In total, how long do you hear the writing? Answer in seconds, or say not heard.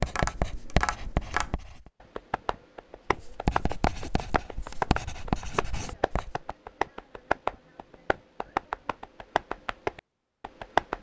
5 s.